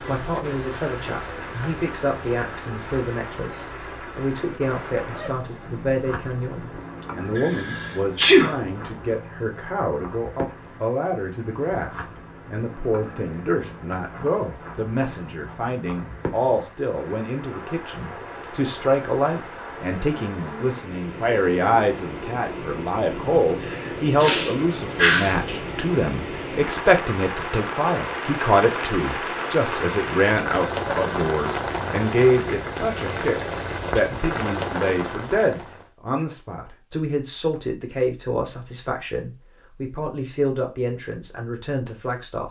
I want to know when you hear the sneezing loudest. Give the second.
8 s.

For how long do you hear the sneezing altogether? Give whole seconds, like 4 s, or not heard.
4 s.